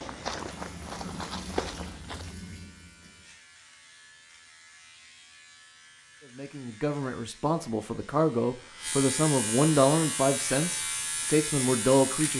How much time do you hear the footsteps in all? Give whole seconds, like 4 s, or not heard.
2 s.